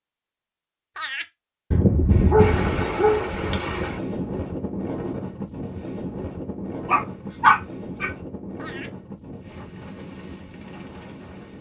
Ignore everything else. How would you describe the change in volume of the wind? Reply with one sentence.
The loudness of the wind goes down.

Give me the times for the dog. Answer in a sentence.
You can hear the dog from 1.7 to 3.6 s and from 6.8 to 8.1 s.